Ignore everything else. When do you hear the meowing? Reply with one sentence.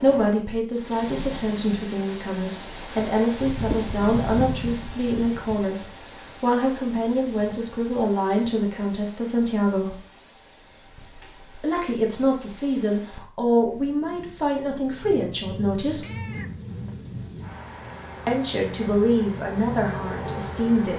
You can hear the meowing from 16.0 to 17.0 s.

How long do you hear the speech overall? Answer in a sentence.
The speech can be heard for 17 seconds in total.